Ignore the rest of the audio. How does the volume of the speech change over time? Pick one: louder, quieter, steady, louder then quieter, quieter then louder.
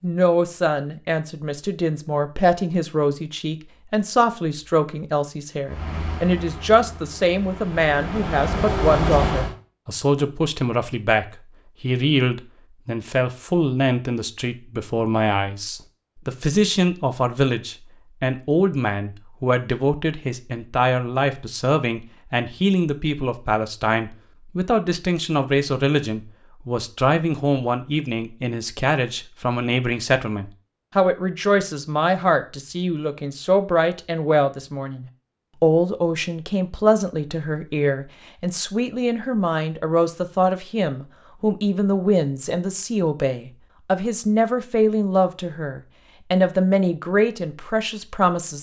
steady.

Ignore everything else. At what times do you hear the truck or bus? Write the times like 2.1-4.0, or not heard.
5.7-9.6.